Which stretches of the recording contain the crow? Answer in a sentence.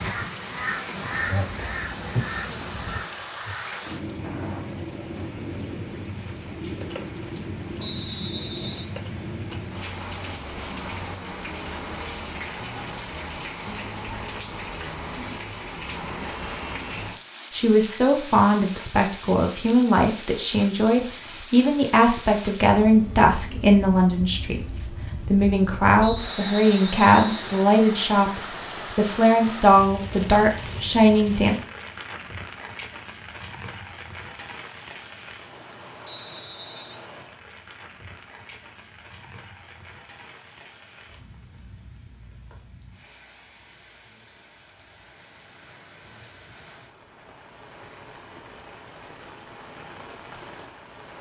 The crow can be heard from 0.0 to 4.7 s.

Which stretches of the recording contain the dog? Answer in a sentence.
The dog can't be heard in this clip.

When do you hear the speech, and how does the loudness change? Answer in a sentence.
The speech can be heard from 17.5 to 31.6 s, at a steady volume.